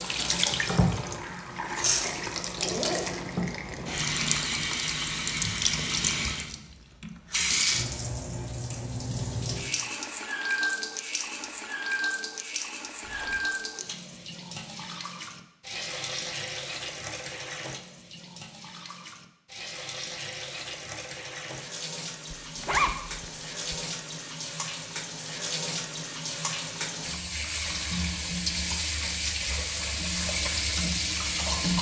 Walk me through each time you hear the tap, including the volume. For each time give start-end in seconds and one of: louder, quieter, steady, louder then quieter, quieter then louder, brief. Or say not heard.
0.0-31.7 quieter then louder.